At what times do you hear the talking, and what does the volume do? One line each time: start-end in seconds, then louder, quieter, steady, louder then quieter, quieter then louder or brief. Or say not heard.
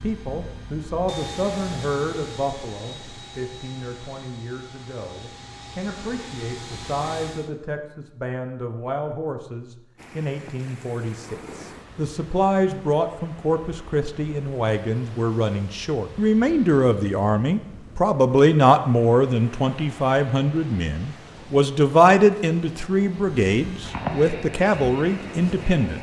0.0-25.9 louder.